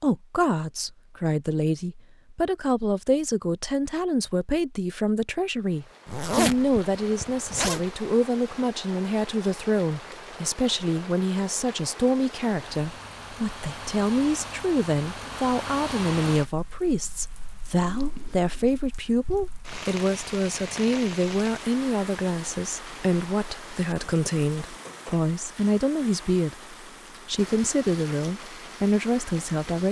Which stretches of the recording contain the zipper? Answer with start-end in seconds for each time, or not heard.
6.0-8.0.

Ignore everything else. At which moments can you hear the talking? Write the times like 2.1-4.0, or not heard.
0.0-29.8.